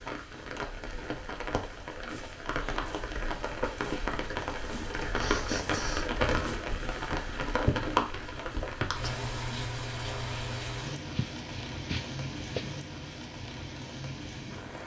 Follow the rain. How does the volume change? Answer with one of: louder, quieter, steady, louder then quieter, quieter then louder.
louder then quieter.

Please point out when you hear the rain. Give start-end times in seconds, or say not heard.
0.0-14.8.